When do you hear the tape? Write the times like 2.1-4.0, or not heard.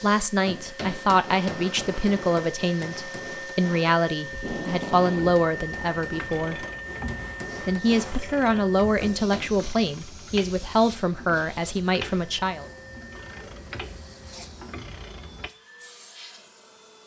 4.3-5.3.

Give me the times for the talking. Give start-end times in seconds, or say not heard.
0.0-6.7, 7.6-12.7.